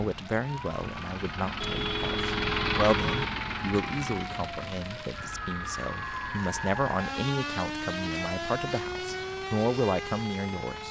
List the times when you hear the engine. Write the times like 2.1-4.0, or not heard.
0.0-10.8.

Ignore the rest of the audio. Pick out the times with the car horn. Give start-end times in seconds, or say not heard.
1.6-3.2.